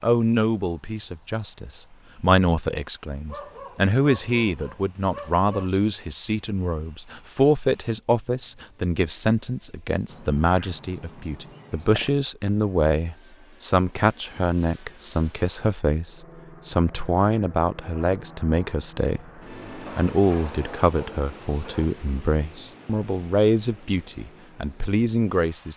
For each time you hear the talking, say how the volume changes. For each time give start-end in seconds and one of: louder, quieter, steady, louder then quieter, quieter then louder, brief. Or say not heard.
0.0-25.7 steady.